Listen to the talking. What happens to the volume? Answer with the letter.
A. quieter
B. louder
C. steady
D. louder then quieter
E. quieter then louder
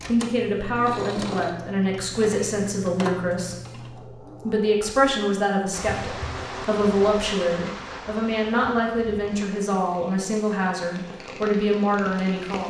C.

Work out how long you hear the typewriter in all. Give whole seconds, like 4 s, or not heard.
not heard.